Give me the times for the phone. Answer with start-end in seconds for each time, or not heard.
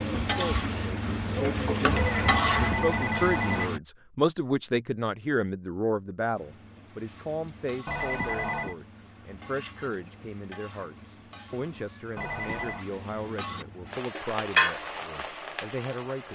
1.9-3.7, 7.8-8.8, 12.2-12.8.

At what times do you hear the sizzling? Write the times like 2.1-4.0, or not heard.
0.0-3.8, 6.3-16.3.